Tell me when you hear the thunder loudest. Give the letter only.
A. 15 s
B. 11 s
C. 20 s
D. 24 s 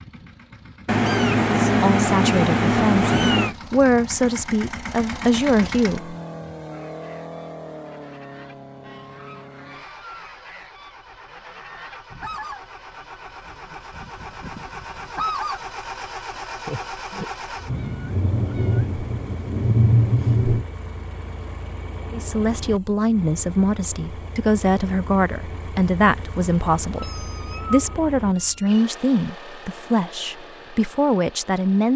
C.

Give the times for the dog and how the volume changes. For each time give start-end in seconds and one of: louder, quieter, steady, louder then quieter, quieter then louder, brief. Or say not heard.
not heard.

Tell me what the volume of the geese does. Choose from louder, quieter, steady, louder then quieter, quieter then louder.
louder.